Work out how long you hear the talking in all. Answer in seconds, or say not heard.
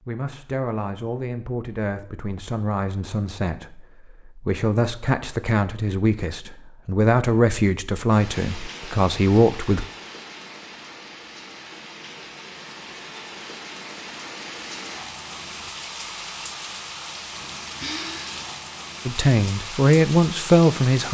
12 s.